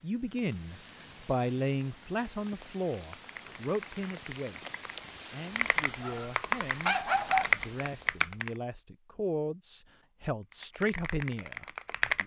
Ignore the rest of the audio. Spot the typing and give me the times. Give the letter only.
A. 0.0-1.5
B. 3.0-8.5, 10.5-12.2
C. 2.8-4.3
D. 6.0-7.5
B.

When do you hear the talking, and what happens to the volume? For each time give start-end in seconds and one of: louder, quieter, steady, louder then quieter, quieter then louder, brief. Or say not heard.
0.0-12.2 quieter then louder.